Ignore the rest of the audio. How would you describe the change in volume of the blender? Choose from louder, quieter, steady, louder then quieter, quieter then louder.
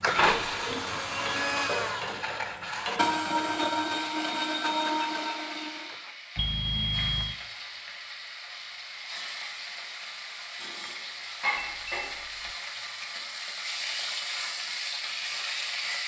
steady.